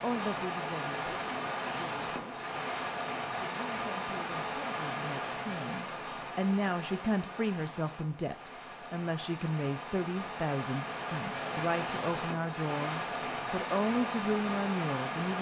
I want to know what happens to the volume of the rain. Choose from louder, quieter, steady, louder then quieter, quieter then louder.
quieter then louder.